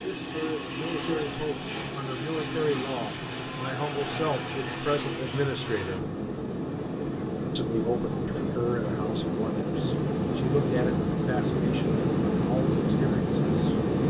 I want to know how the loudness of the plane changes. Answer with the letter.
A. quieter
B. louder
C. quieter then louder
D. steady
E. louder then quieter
B.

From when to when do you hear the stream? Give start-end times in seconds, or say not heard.
not heard.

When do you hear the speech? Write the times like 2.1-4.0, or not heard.
0.0-6.0, 7.5-13.8.